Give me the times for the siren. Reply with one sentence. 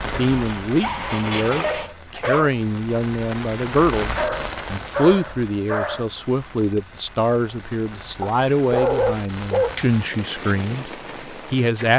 The siren can't be heard in this clip.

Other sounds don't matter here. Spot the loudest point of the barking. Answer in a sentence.
The loudest moment of the barking is at 9 seconds.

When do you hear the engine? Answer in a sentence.
You can hear the engine from 0.0 to 1.9 s.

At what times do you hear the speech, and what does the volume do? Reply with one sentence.
The speech can be heard from 0.1 to 11.9 s, at a steady volume.